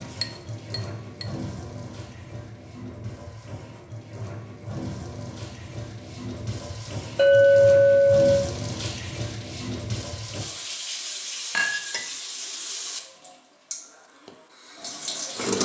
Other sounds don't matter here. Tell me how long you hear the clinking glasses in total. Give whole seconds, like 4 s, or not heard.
3 s.